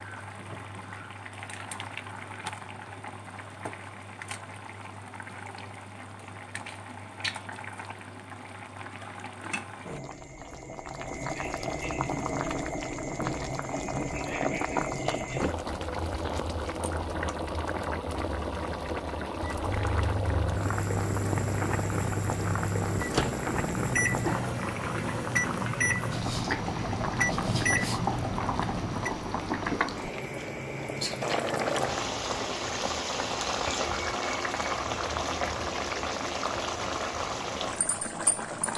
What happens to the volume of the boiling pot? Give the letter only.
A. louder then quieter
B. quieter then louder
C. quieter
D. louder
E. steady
D.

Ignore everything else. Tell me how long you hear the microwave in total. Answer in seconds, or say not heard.
10 s.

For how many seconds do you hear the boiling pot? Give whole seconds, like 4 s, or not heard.
39 s.